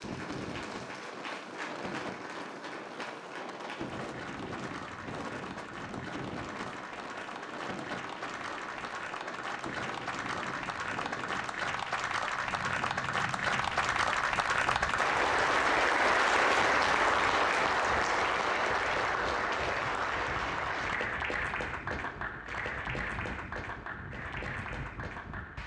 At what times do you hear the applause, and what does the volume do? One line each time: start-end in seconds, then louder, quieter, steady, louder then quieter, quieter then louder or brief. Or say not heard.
0.0-25.6 louder then quieter.